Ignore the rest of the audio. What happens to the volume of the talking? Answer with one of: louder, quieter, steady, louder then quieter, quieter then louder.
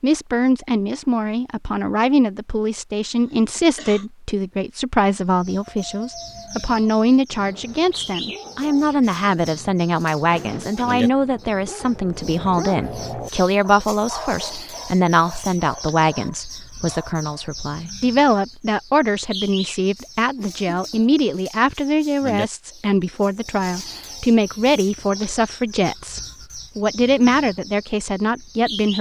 steady.